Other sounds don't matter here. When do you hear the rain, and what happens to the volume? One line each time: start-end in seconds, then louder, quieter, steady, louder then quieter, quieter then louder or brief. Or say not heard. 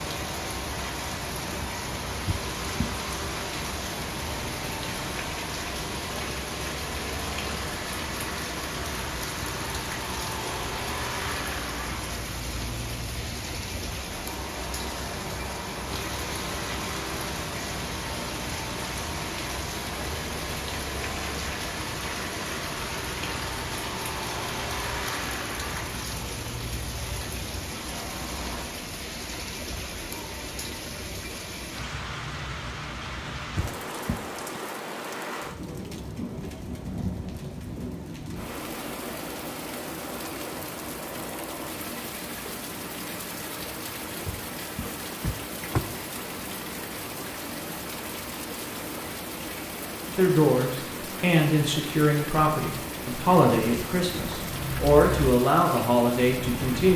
0.0-56.9 steady.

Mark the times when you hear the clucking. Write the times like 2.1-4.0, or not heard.
not heard.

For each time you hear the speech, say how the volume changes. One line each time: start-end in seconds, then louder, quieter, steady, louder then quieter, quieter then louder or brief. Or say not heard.
50.1-56.9 steady.